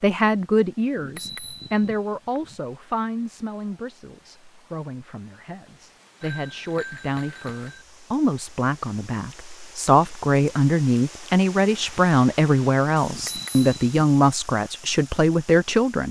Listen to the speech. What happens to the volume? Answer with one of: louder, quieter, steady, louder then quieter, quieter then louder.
quieter then louder.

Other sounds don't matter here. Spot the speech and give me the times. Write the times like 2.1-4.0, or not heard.
0.0-16.0.